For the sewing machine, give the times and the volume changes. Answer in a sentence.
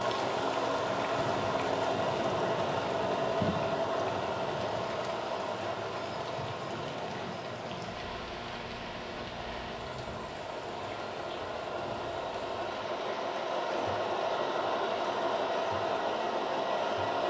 You can hear the sewing machine from 0.0 to 17.2 s, getting quieter then louder.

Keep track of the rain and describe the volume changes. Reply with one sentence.
The volume of the rain goes down.